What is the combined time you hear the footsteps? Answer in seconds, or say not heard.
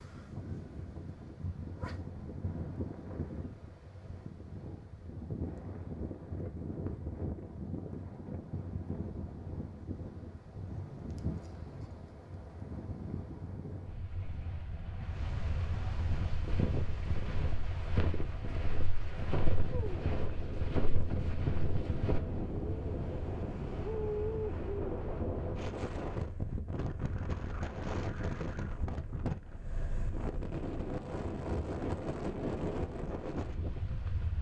6 s.